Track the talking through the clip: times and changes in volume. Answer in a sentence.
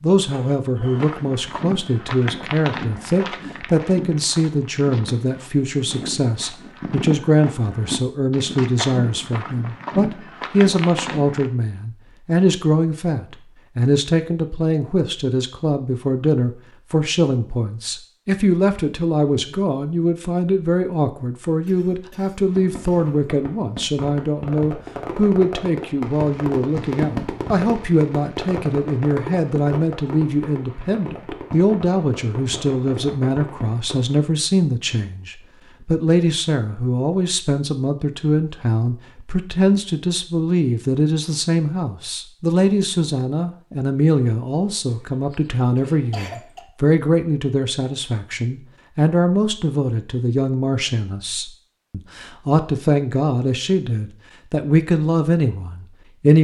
The talking can be heard from 0.0 to 56.3 s, at a steady volume.